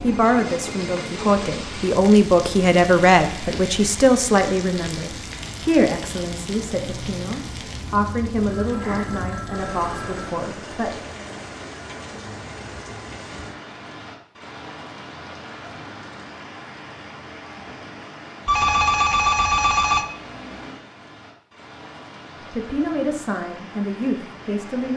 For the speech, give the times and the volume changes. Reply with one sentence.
The speech can be heard from 0.0 to 11.0 s, getting quieter; and briefly from 22.4 to 24.9 s.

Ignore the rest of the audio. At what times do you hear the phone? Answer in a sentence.
The phone can be heard from 0.1 to 1.1 s, from 8.5 to 10.3 s and from 18.4 to 20.1 s.